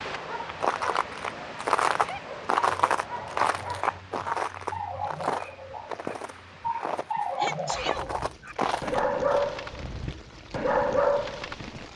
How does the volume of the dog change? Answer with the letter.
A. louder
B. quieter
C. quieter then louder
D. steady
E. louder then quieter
A.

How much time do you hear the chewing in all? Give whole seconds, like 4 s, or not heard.
9 s.